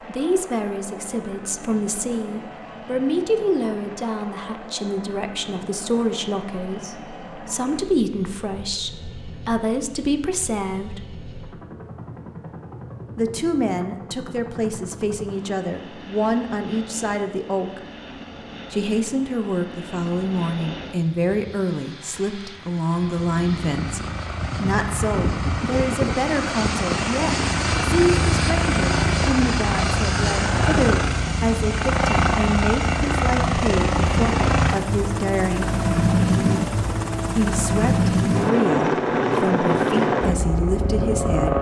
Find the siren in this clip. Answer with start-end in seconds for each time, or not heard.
not heard.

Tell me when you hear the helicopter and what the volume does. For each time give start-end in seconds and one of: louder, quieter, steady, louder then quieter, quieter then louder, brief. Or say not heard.
0.0-41.5 louder.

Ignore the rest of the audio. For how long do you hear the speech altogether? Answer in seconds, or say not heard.
36 s.